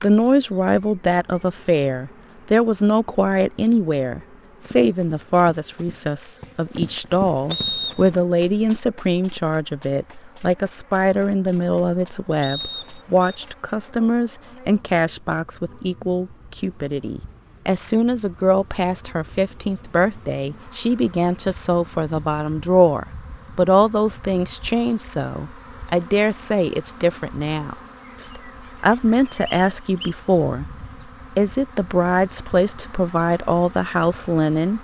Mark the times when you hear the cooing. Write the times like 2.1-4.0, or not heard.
not heard.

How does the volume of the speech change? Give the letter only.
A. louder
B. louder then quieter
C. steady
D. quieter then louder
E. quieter
C.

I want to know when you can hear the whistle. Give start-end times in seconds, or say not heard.
7.5-8.2, 12.4-13.3, 29.4-30.1.